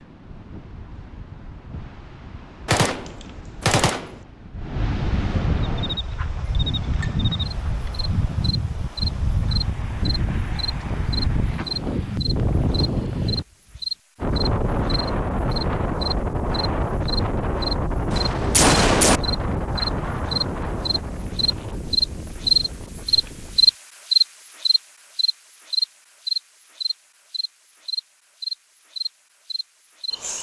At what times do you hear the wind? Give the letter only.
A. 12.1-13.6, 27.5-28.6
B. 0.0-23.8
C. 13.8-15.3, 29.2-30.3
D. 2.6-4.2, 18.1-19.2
B.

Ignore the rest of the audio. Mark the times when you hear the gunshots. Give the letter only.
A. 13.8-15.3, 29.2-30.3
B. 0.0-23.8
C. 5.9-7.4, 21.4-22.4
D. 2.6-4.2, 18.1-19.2
D.